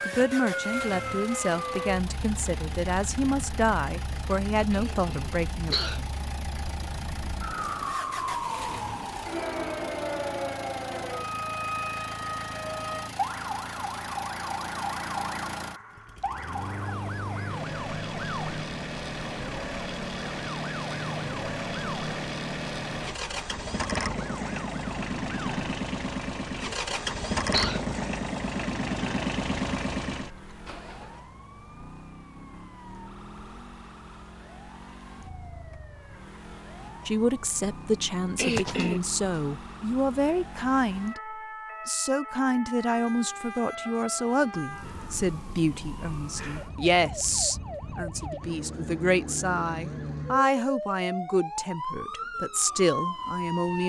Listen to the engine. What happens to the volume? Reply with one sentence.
The volume of the engine goes up.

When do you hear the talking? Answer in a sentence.
The talking can be heard from 0.1 to 5.8 s and from 37.0 to 53.8 s.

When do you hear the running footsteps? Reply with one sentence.
You can't hear the running footsteps here.